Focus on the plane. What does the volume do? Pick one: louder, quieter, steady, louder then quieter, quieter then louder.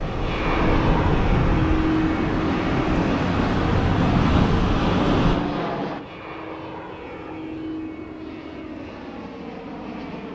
quieter.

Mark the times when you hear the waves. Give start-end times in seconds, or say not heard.
0.0-5.4.